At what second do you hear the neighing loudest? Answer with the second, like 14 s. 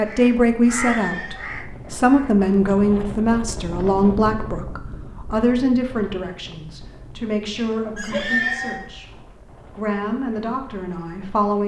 8 s.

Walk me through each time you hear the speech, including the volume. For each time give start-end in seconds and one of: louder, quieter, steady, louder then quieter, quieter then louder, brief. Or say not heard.
0.0-11.6 quieter.